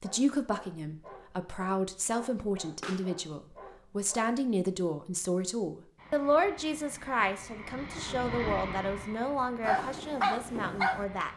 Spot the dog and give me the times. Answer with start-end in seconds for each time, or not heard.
0.0-4.5, 9.6-11.3.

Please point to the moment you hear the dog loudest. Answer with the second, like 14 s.
10 s.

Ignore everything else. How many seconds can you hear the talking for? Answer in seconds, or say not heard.
11 s.